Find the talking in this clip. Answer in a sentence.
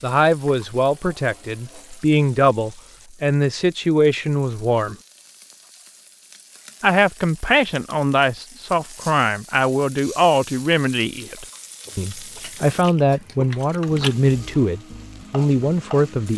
The talking can be heard from 0.0 to 5.0 s and from 6.8 to 16.3 s.